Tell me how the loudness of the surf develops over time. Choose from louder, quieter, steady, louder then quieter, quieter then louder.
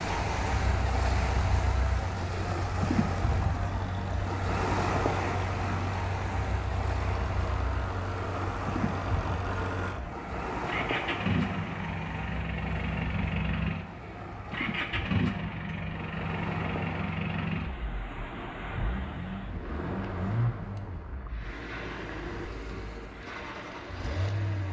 quieter.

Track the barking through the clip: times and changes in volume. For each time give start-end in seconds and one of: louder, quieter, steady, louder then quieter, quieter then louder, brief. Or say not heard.
not heard.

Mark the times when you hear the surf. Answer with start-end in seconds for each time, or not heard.
0.0-24.6.